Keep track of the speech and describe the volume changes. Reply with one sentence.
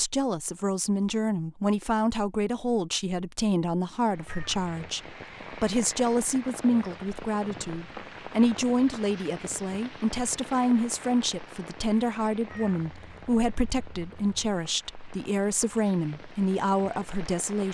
The volume of the speech stays about the same.